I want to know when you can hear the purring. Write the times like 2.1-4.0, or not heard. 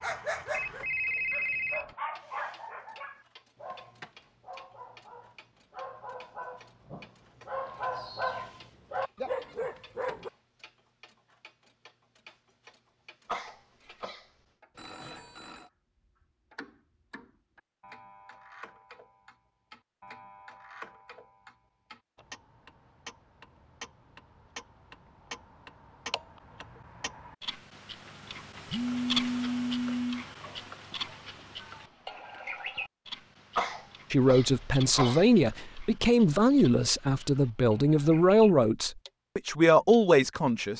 not heard.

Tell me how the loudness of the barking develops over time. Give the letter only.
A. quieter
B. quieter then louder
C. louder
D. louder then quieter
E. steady
B.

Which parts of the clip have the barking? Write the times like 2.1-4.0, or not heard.
0.0-10.3.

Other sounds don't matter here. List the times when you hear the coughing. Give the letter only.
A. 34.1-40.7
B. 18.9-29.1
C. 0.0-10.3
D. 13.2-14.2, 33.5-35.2
D.